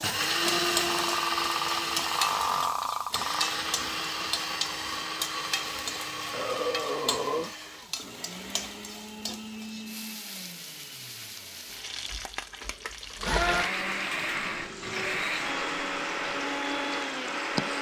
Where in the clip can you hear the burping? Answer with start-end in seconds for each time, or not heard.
0.8-3.5, 6.3-7.5, 13.6-15.2.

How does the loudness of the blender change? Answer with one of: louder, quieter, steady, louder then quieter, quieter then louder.
quieter then louder.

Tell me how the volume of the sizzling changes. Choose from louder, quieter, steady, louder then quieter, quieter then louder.
quieter.